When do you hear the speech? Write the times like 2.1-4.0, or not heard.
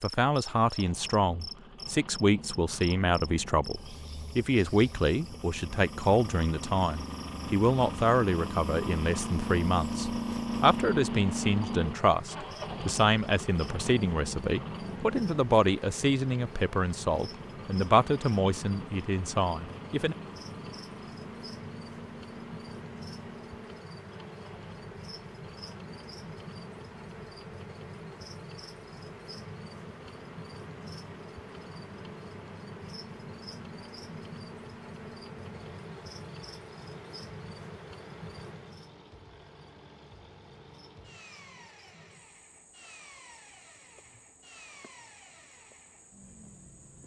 0.0-20.1.